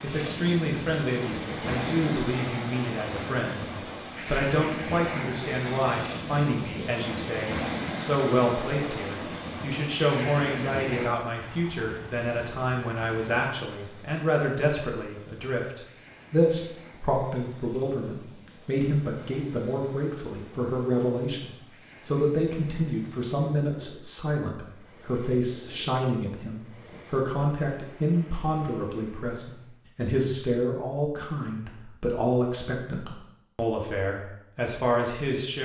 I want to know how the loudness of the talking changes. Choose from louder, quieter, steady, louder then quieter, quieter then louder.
steady.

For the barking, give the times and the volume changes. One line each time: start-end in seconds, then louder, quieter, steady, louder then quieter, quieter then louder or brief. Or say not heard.
not heard.